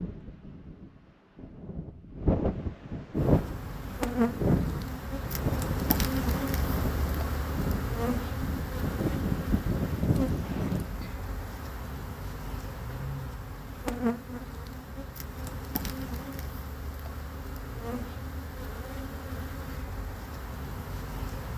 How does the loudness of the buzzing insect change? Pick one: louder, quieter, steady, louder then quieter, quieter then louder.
quieter.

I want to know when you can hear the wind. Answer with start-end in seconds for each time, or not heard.
0.0-11.1.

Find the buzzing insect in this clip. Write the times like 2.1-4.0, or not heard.
3.1-21.5.